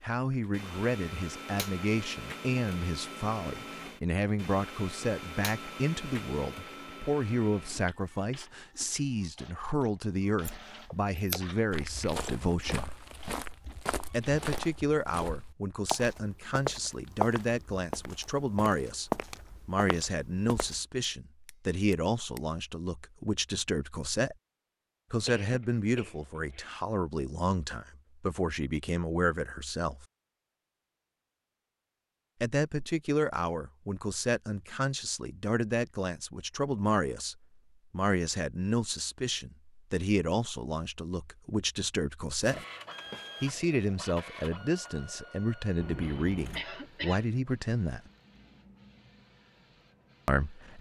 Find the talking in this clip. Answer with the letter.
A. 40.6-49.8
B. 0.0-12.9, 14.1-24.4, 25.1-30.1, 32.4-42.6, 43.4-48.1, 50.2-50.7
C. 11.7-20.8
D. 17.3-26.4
B.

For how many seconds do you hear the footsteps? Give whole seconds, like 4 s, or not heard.
9 s.